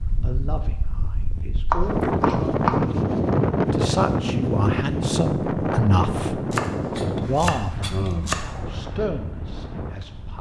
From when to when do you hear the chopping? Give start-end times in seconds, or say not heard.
1.7-2.8, 6.5-8.3.